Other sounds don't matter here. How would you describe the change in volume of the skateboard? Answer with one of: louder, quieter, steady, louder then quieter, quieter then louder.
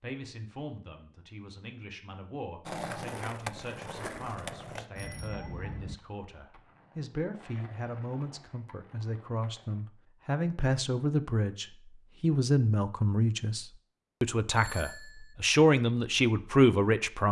quieter then louder.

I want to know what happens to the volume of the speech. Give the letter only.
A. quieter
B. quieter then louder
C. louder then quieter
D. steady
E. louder
E.